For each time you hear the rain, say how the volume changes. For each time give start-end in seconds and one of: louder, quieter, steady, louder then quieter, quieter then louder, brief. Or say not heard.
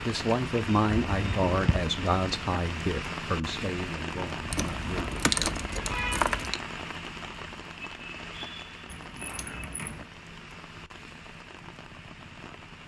0.0-12.8 quieter.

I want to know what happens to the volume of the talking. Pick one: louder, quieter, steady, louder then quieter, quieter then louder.
quieter.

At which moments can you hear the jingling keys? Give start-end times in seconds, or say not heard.
1.0-1.9, 4.5-6.6, 8.8-10.1.